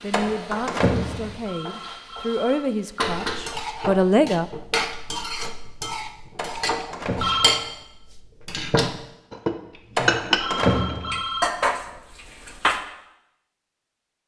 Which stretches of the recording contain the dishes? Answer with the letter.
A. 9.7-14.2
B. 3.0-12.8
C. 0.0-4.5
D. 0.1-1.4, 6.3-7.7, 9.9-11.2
B.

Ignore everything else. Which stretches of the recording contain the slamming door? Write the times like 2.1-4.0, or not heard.
0.1-1.4, 6.3-7.7, 9.9-11.2.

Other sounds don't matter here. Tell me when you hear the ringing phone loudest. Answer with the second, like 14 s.
7 s.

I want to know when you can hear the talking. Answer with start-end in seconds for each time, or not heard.
0.0-4.5.